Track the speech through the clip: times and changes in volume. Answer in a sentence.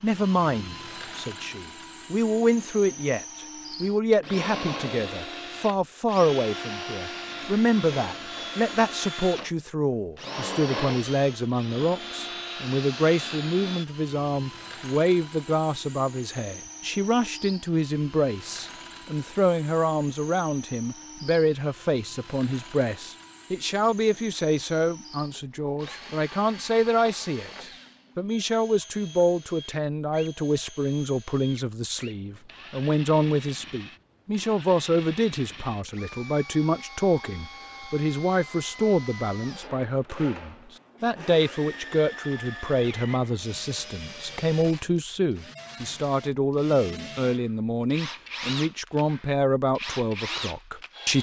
The speech can be heard from 0.0 to 51.1 s, at a steady volume.